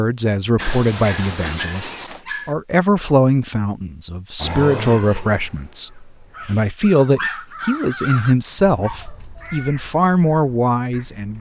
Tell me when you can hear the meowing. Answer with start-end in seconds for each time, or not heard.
0.6-2.2.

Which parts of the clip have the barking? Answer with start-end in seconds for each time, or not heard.
0.6-2.5, 7.2-9.5.